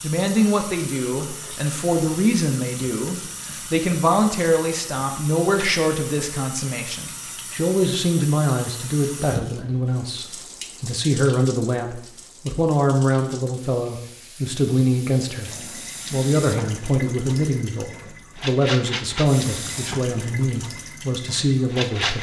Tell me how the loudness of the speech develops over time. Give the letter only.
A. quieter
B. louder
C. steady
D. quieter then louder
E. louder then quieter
C.